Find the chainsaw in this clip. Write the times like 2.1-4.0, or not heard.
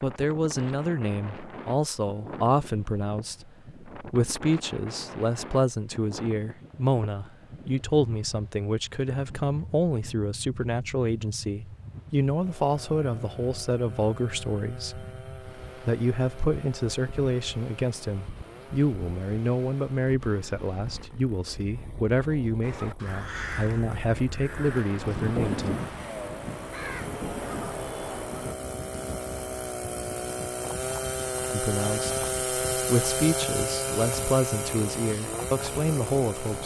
12.3-36.6.